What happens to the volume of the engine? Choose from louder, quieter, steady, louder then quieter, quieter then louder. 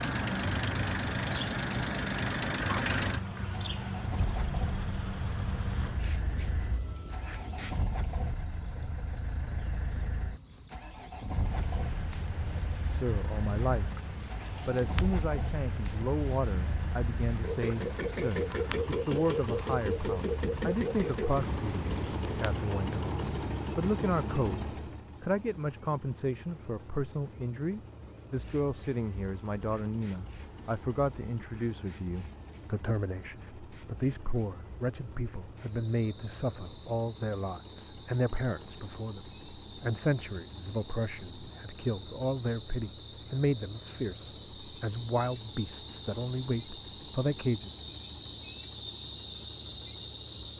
quieter.